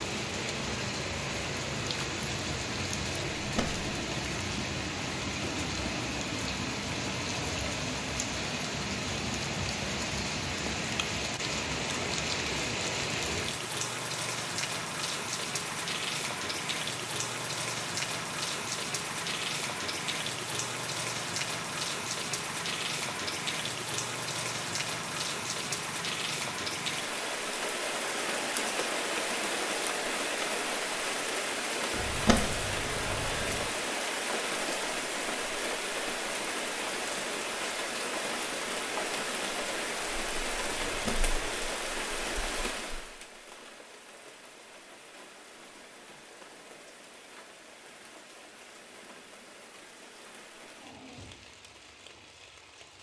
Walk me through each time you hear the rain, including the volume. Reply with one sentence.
The rain can be heard from 0.0 to 52.9 s, getting quieter.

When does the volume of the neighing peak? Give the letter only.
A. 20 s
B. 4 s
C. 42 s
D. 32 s
D.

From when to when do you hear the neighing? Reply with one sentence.
You can hear the neighing from 3.4 to 3.9 s, from 31.9 to 33.6 s and from 40.8 to 41.5 s.